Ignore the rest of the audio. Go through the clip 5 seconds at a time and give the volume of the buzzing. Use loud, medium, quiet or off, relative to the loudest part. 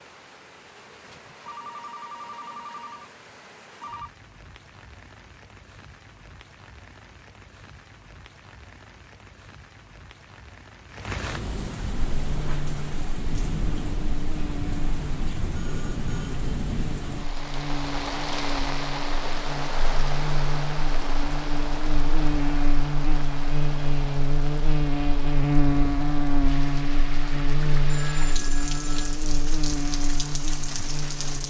off, off, medium, medium, loud, loud, medium.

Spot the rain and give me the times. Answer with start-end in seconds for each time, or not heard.
0.0-31.4.